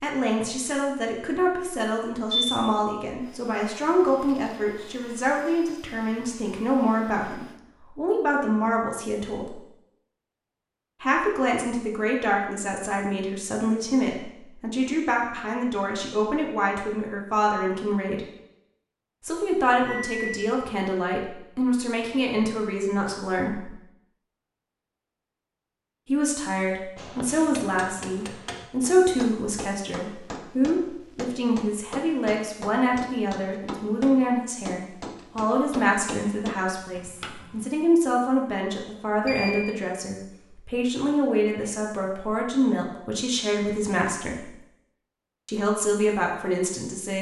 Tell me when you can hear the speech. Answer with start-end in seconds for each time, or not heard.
0.0-9.6, 11.0-18.2, 19.2-23.8, 26.1-44.5, 45.5-47.1.